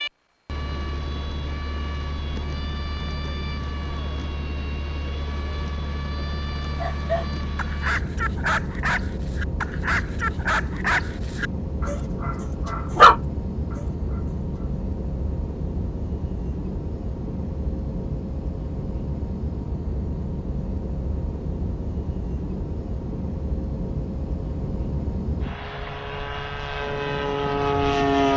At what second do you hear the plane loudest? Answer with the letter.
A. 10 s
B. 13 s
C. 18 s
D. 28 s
D.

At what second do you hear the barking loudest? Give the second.
13 s.